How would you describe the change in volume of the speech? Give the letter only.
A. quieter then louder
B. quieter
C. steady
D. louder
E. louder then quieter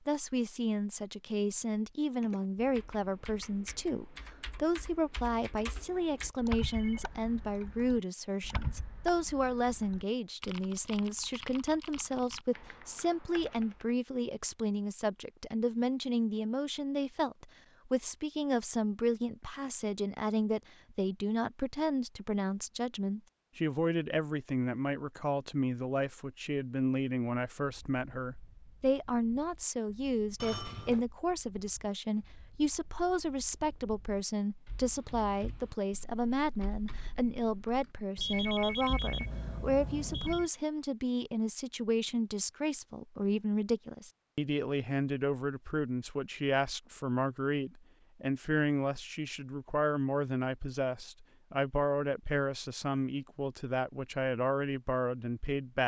C.